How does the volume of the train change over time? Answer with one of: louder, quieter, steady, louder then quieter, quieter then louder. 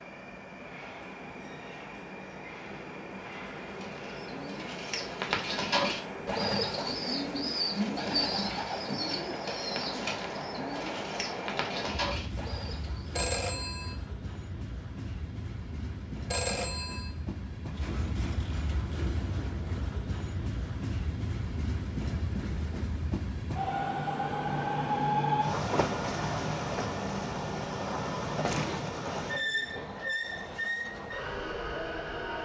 louder.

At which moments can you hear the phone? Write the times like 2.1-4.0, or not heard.
13.2-13.9, 16.3-17.1.